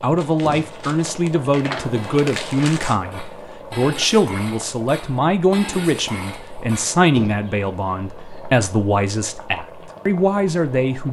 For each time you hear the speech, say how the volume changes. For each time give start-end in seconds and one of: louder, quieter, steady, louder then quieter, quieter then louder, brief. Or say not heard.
0.0-11.0 steady.